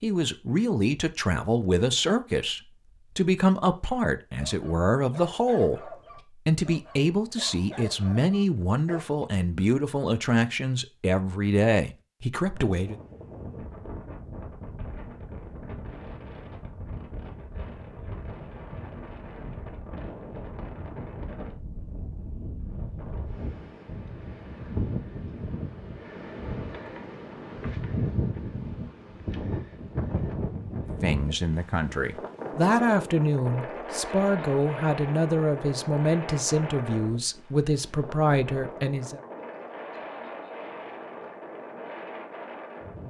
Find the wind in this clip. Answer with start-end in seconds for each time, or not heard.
12.3-43.0.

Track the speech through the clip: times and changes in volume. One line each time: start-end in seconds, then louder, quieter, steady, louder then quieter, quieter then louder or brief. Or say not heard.
0.0-12.9 steady
31.0-39.2 steady.